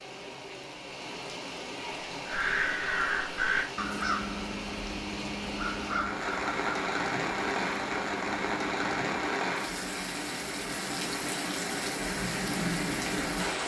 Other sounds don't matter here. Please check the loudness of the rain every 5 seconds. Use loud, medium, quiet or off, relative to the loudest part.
medium, loud, loud.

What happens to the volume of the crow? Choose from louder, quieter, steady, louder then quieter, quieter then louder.
quieter.